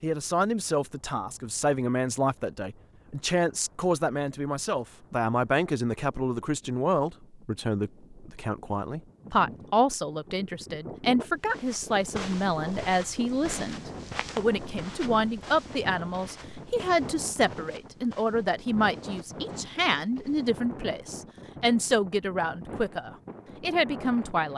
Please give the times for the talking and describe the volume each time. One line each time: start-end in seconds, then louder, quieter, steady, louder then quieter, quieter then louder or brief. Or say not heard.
0.0-24.5 steady.